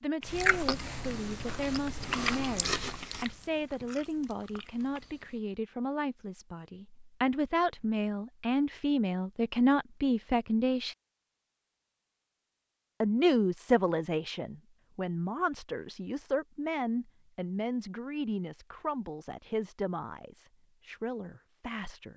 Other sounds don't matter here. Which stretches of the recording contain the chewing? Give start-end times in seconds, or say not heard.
0.2-5.4.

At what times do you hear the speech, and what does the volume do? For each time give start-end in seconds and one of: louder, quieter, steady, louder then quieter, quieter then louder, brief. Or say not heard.
0.0-10.9 louder
13.0-22.1 quieter.